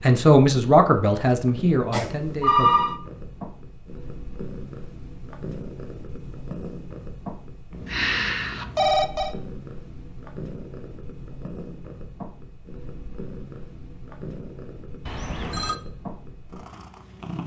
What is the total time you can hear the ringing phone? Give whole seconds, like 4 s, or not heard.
3 s.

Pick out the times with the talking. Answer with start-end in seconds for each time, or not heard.
0.0-2.7.